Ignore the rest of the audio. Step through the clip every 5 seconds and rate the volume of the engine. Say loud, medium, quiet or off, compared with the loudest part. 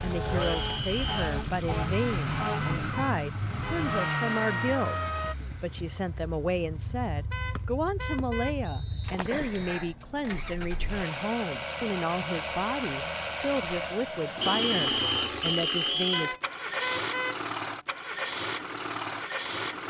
loud, medium, loud, loud.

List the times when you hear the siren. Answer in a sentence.
You can hear the siren from 0.0 to 5.3 s.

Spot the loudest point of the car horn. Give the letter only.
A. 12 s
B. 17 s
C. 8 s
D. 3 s
B.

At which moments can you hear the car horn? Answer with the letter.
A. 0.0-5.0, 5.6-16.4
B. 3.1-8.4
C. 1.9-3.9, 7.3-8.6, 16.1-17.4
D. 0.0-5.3
C.